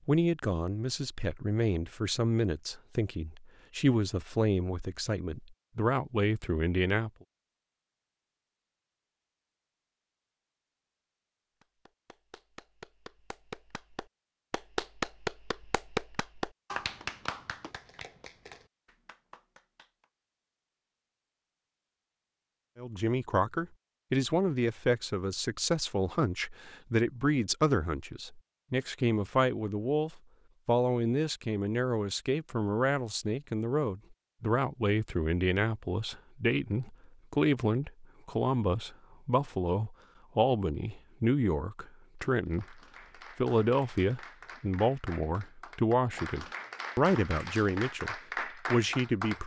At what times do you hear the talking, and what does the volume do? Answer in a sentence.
You can hear the talking from 0.1 to 7.1 s, at a steady volume; and from 22.8 to 49.4 s, at a steady volume.